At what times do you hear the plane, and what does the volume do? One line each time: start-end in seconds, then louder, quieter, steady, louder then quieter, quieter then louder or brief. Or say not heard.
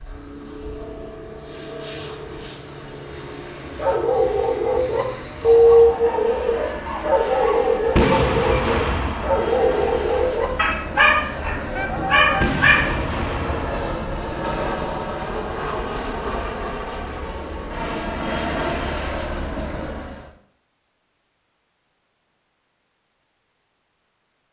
0.0-20.3 louder.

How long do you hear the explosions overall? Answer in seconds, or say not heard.
3 s.